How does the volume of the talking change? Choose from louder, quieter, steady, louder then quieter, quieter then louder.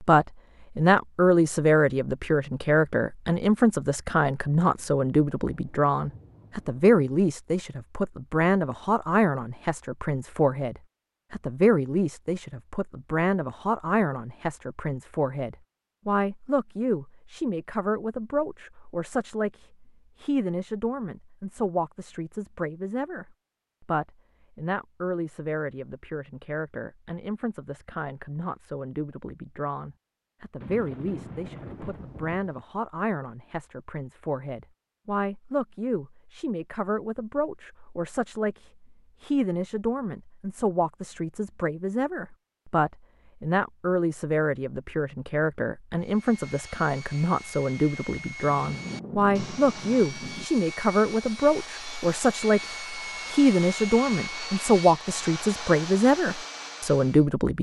quieter then louder.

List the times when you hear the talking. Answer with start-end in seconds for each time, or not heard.
0.0-57.5.